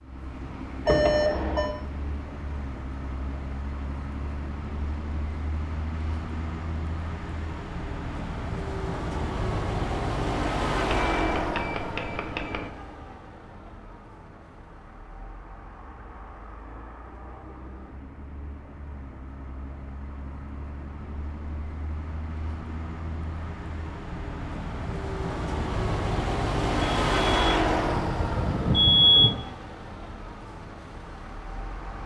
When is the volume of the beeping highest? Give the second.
29 s.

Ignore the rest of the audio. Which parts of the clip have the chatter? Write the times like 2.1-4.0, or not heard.
not heard.